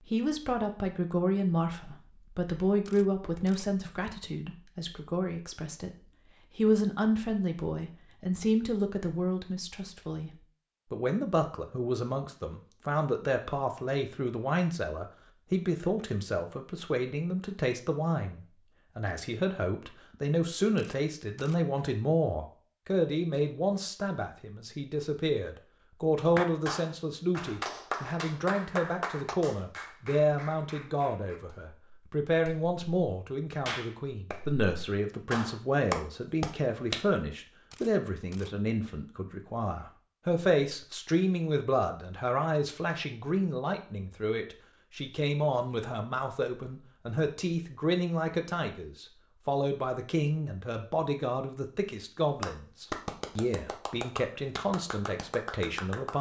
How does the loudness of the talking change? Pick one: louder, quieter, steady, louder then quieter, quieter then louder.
steady.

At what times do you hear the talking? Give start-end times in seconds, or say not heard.
0.0-6.0, 6.5-56.1.